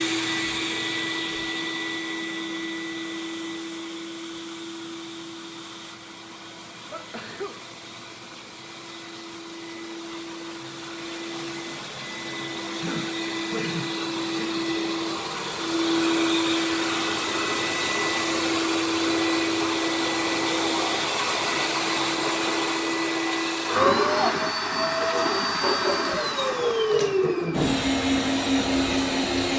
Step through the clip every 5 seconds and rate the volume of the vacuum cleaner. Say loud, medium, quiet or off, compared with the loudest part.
medium, quiet, medium, loud, loud, loud.